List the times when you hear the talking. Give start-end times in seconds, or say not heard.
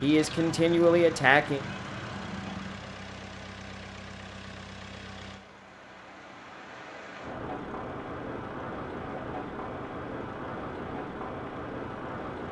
0.0-1.6.